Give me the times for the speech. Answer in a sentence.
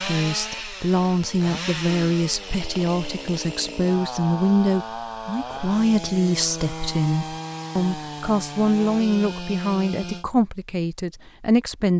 The speech can be heard from 0.0 to 11.9 s.